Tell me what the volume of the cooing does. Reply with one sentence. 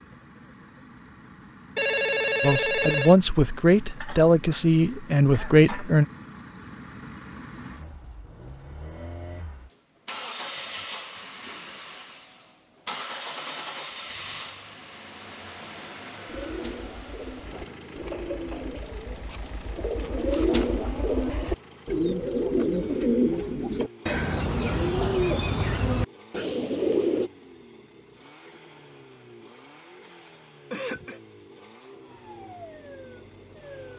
The loudness of the cooing goes up.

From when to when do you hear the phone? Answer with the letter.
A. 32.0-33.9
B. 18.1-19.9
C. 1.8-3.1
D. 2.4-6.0
C.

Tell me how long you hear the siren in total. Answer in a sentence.
The siren can be heard for 2 seconds in total.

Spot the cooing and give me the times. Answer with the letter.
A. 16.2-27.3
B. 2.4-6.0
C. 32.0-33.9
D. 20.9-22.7
A.